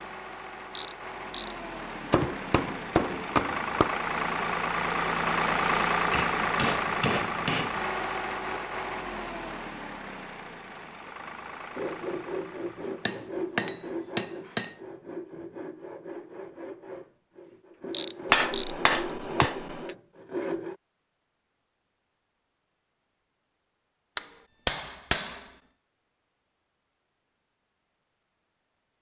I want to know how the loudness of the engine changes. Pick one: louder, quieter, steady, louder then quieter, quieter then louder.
louder then quieter.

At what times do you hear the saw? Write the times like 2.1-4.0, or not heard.
11.7-20.8.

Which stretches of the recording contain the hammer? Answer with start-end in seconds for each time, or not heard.
2.1-4.0, 6.1-7.8, 13.1-14.7, 18.3-19.9, 24.1-25.4.